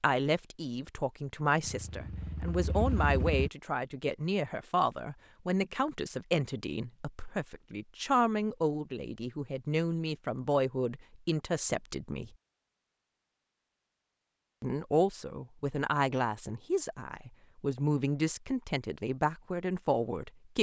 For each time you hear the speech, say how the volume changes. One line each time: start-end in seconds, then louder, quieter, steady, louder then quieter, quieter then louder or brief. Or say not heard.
0.0-12.3 steady
14.6-20.5 steady.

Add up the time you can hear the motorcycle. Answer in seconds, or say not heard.
2 s.